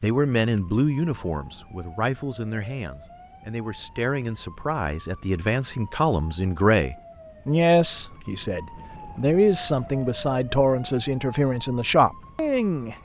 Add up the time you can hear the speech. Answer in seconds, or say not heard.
13 s.